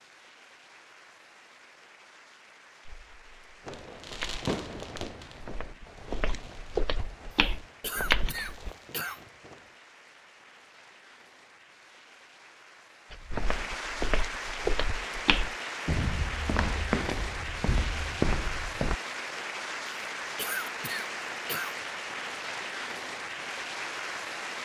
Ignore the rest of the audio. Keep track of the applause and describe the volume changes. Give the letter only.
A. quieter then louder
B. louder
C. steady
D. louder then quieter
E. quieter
B.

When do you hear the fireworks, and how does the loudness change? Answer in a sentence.
The fireworks can be heard from 3.6 to 9.8 s, getting quieter.